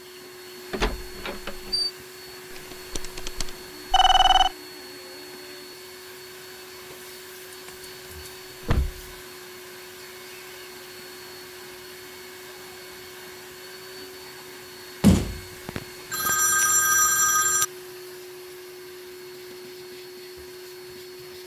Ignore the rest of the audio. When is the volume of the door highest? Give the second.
15 s.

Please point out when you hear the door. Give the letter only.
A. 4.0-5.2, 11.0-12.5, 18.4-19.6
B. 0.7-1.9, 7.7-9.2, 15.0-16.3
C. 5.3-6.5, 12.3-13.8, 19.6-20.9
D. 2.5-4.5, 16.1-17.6
B.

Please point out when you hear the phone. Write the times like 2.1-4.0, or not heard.
2.5-4.5, 16.1-17.6.